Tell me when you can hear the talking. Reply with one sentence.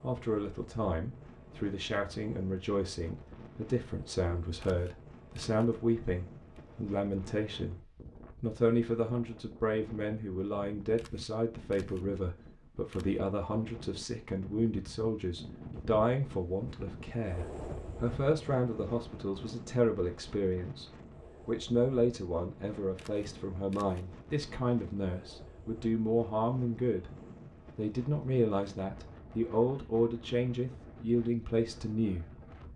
The talking can be heard from 0.0 to 7.8 s, from 8.4 to 27.1 s and from 27.8 to 32.2 s.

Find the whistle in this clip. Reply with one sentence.
You can't hear the whistle here.